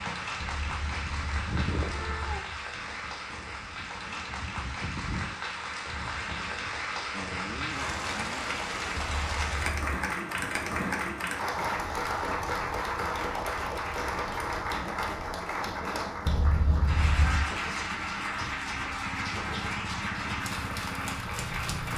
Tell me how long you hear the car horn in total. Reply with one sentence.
The car horn can be heard for 4 seconds in total.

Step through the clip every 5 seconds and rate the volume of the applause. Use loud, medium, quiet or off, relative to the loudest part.
medium, loud, loud, loud, loud.